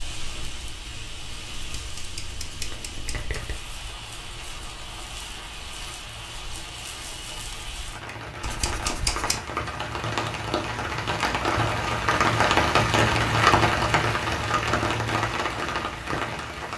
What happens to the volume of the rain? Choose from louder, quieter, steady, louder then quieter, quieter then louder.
louder.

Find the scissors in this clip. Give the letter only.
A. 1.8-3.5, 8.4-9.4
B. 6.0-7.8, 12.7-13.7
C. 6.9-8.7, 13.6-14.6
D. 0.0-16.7
A.